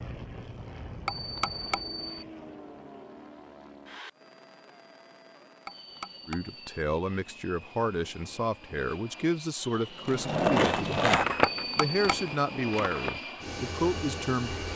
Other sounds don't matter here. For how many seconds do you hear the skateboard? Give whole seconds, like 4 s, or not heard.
3 s.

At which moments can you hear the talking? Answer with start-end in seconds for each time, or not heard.
6.2-14.7.